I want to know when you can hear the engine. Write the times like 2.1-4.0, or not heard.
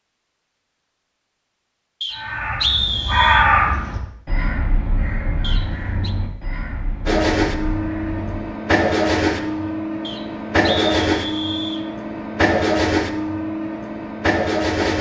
7.0-14.9.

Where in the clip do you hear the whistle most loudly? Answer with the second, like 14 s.
3 s.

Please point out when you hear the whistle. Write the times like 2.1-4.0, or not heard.
2.0-3.5, 5.4-6.2, 10.1-11.8.